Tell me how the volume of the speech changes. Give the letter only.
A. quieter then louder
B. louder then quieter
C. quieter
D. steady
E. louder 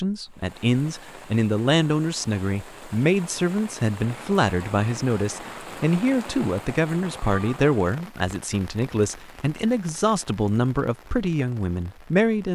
D.